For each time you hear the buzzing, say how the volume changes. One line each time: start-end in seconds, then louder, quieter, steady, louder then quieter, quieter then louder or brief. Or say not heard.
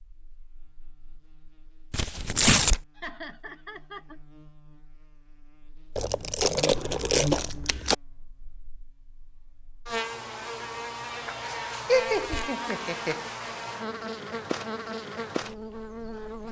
0.2-16.4 louder.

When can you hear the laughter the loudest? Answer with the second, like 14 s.
12 s.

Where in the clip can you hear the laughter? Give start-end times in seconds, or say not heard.
3.0-4.2, 11.8-13.2.